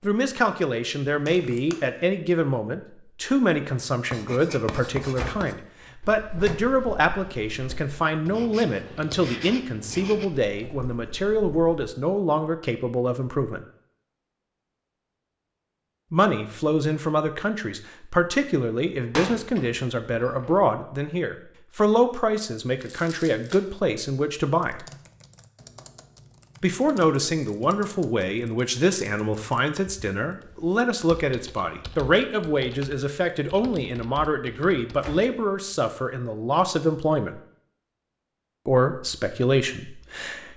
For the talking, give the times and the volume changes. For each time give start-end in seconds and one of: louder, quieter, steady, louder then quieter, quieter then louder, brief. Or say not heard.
0.0-13.7 steady
16.1-24.9 steady
26.6-37.4 steady
38.6-40.5 brief.